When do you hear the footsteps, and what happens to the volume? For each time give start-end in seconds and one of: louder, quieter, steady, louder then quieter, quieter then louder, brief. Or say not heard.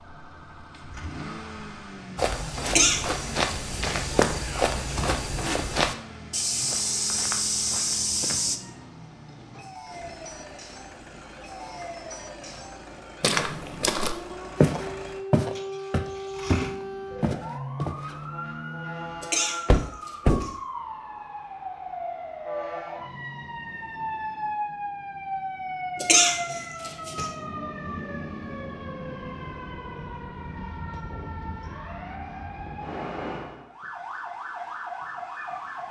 2.1-8.6 steady
13.2-18.1 louder then quieter.